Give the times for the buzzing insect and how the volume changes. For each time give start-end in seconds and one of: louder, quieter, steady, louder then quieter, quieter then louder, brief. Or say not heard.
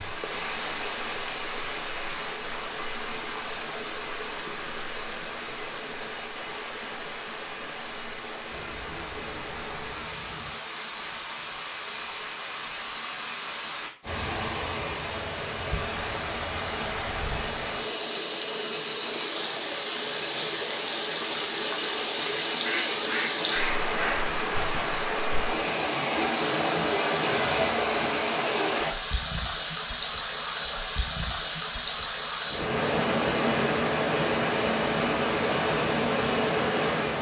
not heard.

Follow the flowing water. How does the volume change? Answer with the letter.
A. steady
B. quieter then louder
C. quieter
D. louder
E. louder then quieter
D.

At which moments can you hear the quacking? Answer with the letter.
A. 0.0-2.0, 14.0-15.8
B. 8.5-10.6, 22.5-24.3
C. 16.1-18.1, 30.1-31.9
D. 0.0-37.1
B.